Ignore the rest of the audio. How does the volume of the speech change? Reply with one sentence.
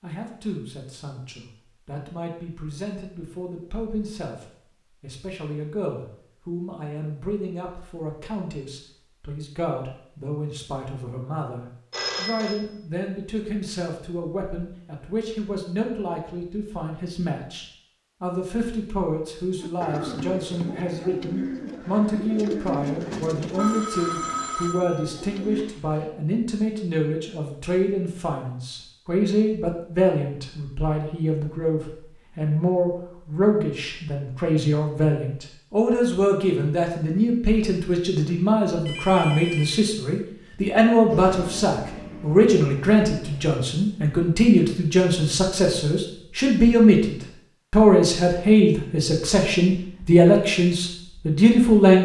The volume of the speech goes up.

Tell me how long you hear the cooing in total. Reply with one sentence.
You can hear the cooing for 6 seconds altogether.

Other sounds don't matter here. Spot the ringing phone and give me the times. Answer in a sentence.
You can hear the ringing phone from 11.9 to 12.6 s, from 23.6 to 26.1 s and from 38.9 to 39.9 s.